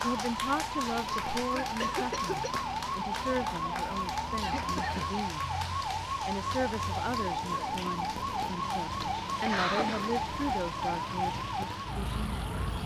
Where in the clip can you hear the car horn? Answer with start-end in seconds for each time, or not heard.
not heard.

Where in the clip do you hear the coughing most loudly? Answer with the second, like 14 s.
10 s.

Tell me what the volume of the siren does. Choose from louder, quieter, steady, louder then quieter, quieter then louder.
steady.